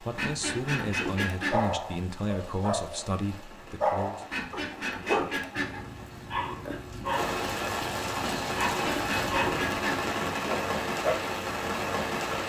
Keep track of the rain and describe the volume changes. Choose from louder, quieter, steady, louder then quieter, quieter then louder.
louder.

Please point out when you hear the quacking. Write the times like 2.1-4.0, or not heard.
0.1-1.6, 4.3-5.8, 8.7-10.1.